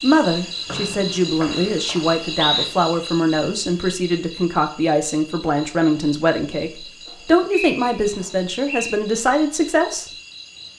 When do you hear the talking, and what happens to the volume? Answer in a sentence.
The talking can be heard from 0.0 to 10.1 s, at a steady volume.